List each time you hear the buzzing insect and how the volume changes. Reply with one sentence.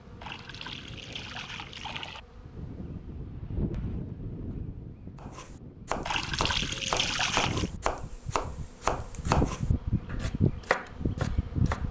The buzzing insect can be heard from 0.0 to 11.8 s, getting louder.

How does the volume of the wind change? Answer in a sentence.
The volume of the wind goes up, then down.